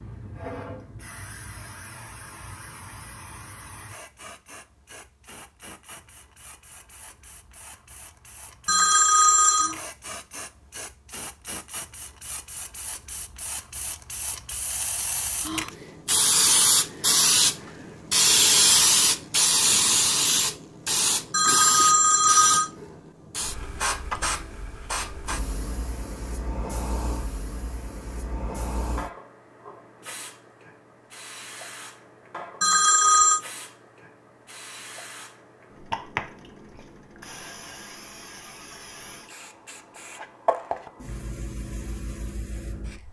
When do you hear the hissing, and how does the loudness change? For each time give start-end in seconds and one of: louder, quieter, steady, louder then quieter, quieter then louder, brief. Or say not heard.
0.0-43.0 louder then quieter.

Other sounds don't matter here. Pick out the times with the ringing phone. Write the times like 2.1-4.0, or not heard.
8.7-9.8, 21.3-22.7, 32.6-33.4.